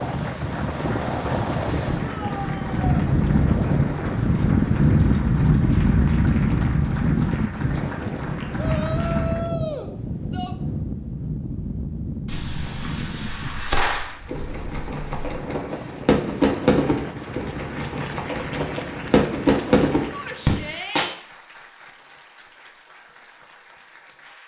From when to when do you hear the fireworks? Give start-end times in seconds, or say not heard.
12.2-21.1.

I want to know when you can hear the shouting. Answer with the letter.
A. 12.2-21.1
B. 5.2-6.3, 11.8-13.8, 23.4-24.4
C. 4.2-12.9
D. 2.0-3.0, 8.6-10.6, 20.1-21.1
D.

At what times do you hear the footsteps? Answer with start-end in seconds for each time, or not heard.
not heard.